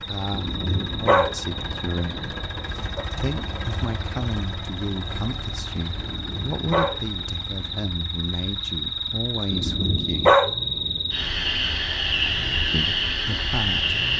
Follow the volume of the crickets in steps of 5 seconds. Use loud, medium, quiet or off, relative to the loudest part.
quiet, medium, loud.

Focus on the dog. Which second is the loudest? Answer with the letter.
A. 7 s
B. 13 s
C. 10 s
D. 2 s
C.